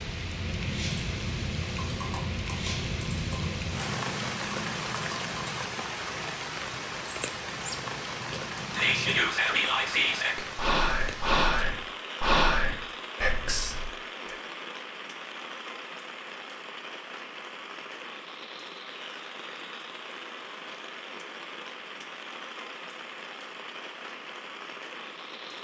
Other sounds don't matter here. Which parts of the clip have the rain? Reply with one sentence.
The rain can be heard from 0.0 to 25.6 s.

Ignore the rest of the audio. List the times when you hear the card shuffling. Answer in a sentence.
You can't hear the card shuffling here.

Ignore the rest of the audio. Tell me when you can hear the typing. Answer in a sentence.
You can hear the typing from 0.4 to 9.2 s.